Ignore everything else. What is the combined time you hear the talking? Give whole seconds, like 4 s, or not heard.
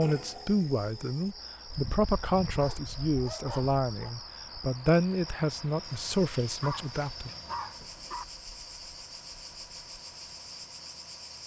7 s.